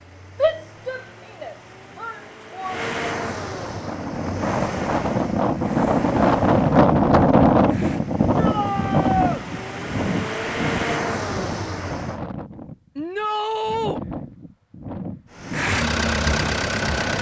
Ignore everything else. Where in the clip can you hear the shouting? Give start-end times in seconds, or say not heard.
0.4-2.8, 8.3-9.4, 12.9-14.0.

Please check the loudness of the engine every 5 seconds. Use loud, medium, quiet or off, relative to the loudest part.
medium, quiet, loud, loud.